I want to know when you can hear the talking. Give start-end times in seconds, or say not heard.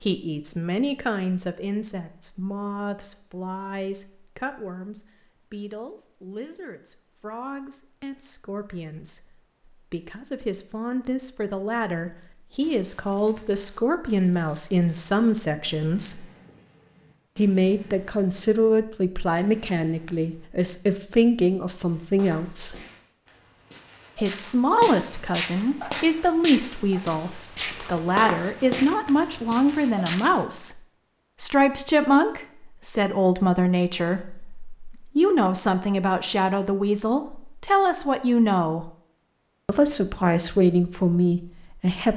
0.0-16.2, 17.4-22.8, 24.1-30.8, 31.4-38.9, 39.6-42.1.